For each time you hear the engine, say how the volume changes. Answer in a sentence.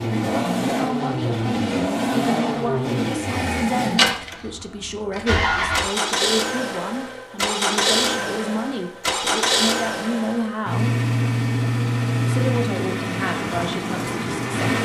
The engine can be heard from 0.0 to 14.7 s, at a steady volume.